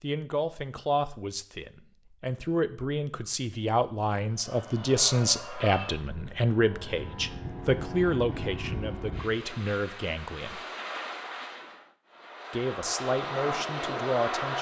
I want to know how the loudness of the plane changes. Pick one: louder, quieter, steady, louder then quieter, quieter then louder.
louder.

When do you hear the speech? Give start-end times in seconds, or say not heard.
0.0-10.6, 12.5-14.5.